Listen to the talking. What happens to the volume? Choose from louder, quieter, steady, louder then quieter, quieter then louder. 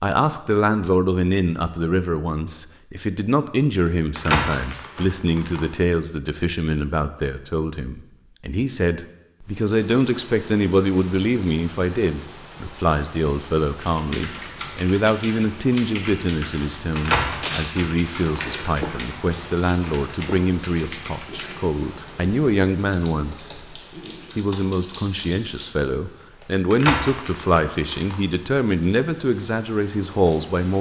steady.